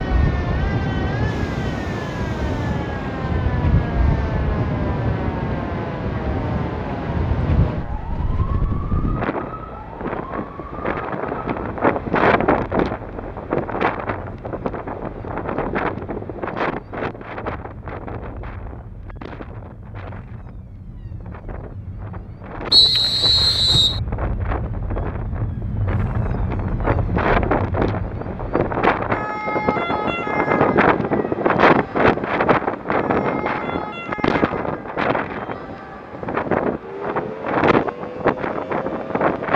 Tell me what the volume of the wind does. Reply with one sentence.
The volume of the wind goes down, then up.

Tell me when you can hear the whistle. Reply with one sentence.
You can hear the whistle from 22.7 to 24.0 s.